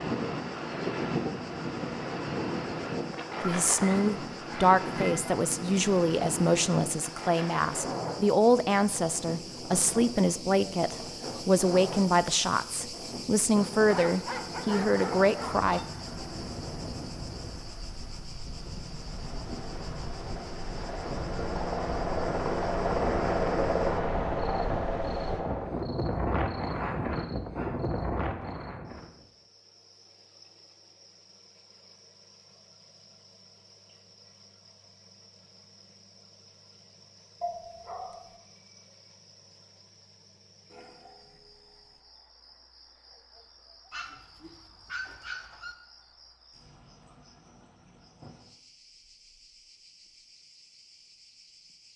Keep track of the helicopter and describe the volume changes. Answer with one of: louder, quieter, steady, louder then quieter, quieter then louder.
louder.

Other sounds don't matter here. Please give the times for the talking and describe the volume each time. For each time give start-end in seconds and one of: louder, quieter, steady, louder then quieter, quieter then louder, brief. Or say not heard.
3.4-15.8 steady.